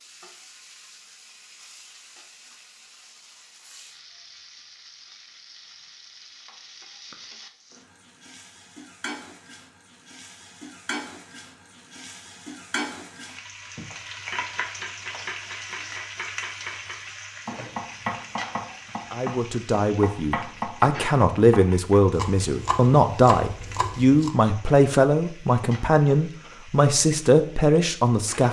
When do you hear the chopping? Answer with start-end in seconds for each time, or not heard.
13.8-24.4.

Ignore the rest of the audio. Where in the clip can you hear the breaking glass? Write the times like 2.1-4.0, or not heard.
not heard.